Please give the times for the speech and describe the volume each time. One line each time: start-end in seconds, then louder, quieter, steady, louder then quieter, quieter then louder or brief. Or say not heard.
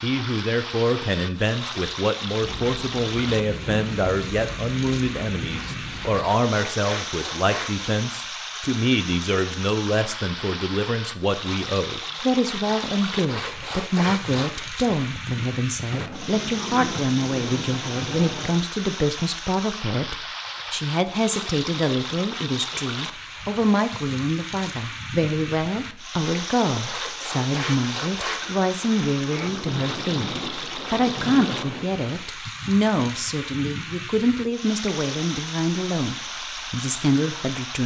0.0-37.8 steady.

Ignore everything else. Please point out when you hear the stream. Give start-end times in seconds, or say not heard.
0.0-37.8.